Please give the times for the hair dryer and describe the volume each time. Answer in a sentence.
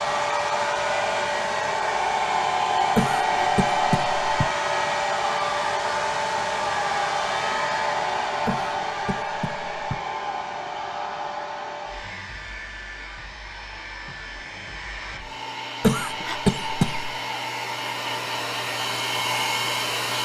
You can hear the hair dryer from 0.0 to 20.2 s, getting quieter then louder.